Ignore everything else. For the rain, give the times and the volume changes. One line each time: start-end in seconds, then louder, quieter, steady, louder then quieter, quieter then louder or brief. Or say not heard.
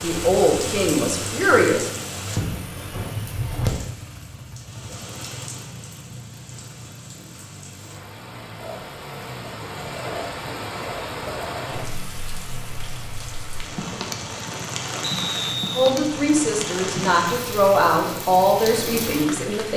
0.0-19.7 quieter then louder.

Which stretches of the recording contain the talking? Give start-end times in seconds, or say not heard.
0.0-1.9, 15.8-19.7.